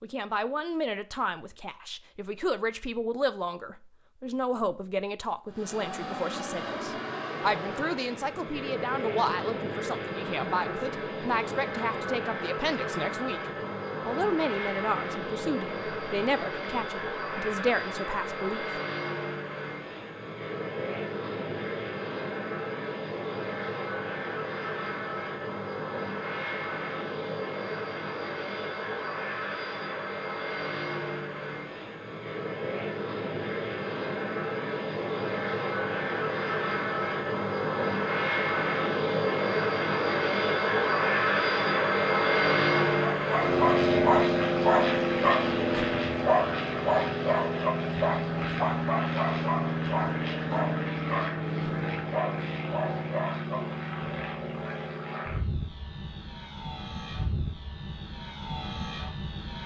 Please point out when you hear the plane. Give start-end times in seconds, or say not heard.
5.5-59.6.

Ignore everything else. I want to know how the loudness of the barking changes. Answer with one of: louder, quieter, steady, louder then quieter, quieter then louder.
quieter.